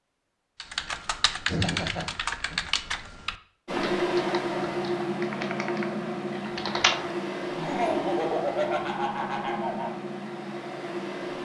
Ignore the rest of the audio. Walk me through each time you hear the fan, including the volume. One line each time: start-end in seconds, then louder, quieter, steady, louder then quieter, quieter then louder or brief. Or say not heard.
3.6-11.4 quieter.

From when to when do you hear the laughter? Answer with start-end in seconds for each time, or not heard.
1.4-2.6, 7.5-10.0.